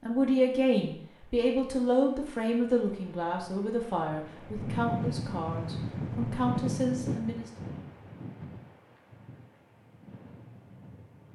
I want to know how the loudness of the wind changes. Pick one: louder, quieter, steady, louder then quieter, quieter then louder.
louder then quieter.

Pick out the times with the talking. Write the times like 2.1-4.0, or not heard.
0.0-7.5.